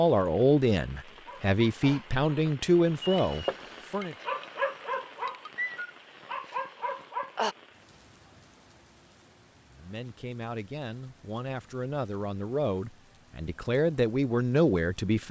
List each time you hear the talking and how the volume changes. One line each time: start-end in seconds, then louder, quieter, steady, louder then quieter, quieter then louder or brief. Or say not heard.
0.0-4.2 steady
9.7-15.2 louder.